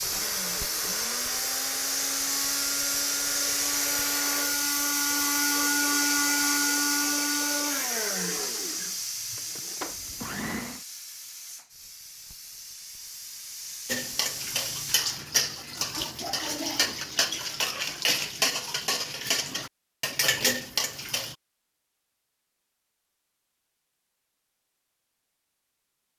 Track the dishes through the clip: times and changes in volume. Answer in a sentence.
The dishes can be heard from 13.8 to 21.4 s, at a steady volume.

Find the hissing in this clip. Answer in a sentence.
You can hear the hissing from 0.0 to 15.1 s.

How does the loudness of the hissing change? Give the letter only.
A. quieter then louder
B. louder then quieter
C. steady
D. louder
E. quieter
E.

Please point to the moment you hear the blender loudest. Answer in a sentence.
The volume of the blender peaks at 6 seconds.